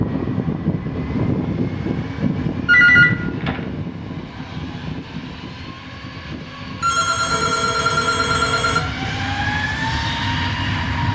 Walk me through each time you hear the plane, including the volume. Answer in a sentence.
The plane can be heard from 0.0 to 11.0 s, getting quieter then louder.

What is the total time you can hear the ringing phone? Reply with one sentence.
The ringing phone can be heard for 3 seconds in total.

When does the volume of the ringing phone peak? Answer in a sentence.
The volume of the ringing phone peaks at 3 seconds.